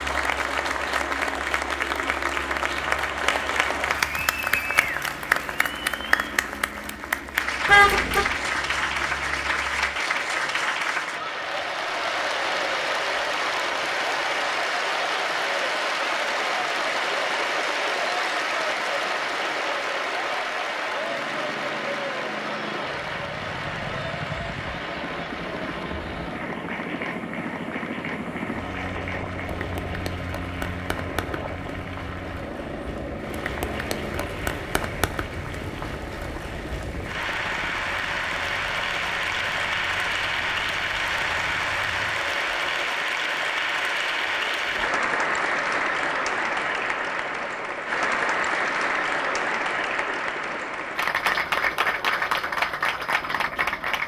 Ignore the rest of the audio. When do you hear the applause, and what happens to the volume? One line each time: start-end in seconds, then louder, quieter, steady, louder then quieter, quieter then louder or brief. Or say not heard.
0.0-54.0 quieter then louder.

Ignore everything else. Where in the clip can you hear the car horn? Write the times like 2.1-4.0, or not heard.
7.7-8.3.